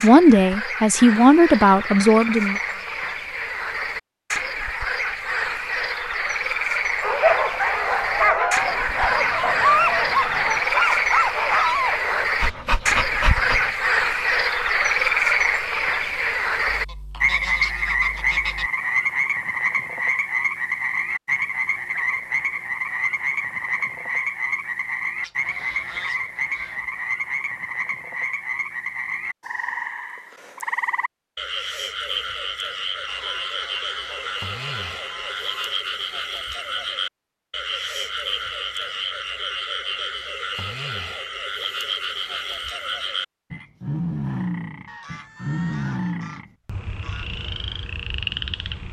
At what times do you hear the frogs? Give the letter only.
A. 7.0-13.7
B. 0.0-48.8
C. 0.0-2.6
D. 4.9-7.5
B.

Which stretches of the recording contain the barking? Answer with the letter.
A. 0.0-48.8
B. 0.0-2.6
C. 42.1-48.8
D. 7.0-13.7
D.